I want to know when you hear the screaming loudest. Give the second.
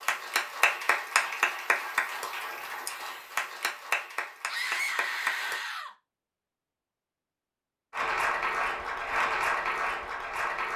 5 s.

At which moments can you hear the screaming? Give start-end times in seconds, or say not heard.
4.5-6.0.